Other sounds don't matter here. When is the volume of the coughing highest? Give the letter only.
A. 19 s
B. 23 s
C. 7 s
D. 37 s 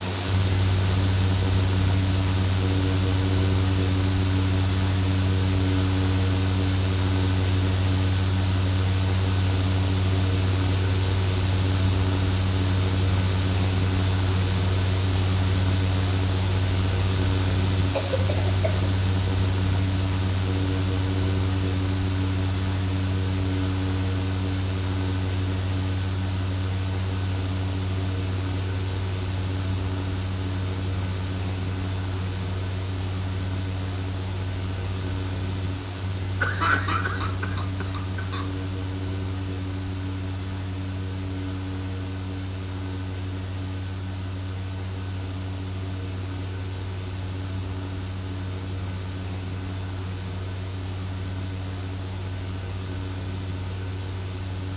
D.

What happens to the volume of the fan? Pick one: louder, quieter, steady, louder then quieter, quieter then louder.
quieter.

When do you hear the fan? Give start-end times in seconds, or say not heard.
0.0-54.7.